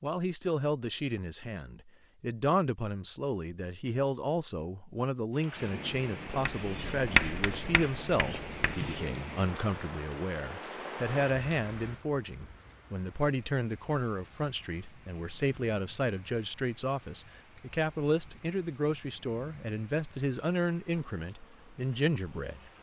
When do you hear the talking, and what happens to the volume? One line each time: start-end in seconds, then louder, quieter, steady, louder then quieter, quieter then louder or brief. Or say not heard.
0.0-22.7 steady.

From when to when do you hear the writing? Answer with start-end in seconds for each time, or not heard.
6.4-9.1.